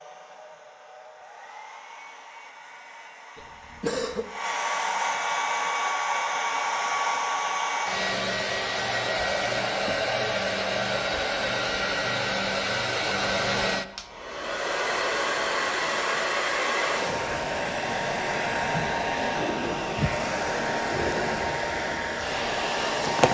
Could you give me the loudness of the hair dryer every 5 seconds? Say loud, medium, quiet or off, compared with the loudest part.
medium, loud, loud, loud, loud.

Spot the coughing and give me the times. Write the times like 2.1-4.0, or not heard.
3.4-4.2.